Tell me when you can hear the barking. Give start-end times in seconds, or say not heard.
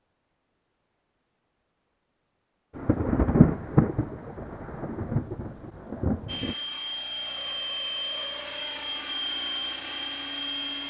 not heard.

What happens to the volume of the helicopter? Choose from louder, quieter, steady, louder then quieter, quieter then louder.
steady.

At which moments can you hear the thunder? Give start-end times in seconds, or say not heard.
2.8-6.5.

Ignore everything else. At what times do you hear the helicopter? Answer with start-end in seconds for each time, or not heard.
6.2-10.8.